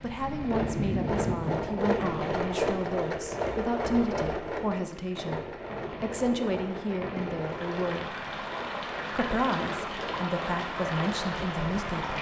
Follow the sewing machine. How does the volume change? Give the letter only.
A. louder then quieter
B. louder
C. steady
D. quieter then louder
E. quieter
E.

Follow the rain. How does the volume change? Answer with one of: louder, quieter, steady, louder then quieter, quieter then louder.
quieter then louder.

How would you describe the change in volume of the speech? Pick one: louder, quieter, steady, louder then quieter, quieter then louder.
steady.